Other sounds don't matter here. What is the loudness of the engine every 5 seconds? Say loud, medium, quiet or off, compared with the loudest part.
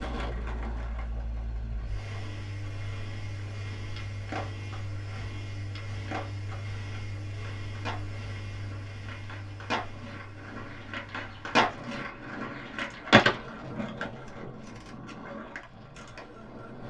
loud, loud, medium, medium.